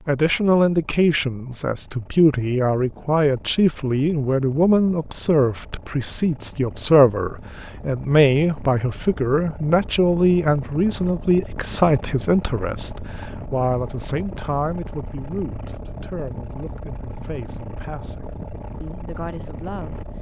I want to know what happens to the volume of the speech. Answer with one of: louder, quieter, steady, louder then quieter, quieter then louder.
quieter.